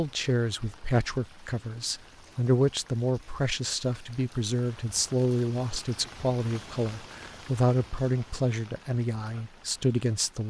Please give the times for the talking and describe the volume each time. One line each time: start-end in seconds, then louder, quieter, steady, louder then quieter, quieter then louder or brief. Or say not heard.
0.0-10.4 steady.